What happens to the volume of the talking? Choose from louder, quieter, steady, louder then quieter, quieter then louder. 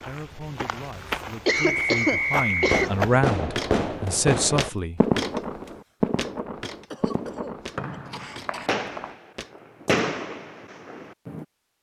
louder.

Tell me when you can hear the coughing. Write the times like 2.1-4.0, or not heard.
1.4-2.9, 6.9-8.7.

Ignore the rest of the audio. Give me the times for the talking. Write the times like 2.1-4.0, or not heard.
0.0-5.0.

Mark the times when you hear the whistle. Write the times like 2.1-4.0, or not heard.
1.4-2.8, 7.8-9.1.